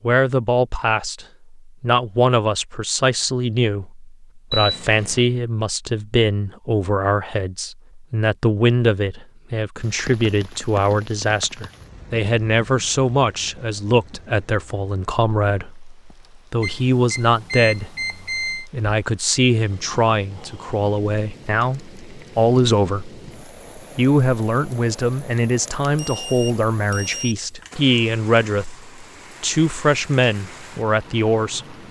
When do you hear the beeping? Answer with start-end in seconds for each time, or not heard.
4.5-5.2, 16.6-18.6, 25.4-27.4.